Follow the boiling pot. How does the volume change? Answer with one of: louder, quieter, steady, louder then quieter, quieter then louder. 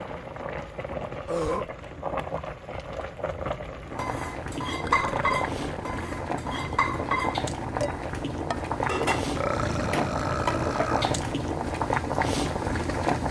louder.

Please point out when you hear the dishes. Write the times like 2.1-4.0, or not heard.
4.0-11.0.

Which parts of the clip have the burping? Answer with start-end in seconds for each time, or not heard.
1.2-1.7, 4.8-6.0, 9.3-11.2.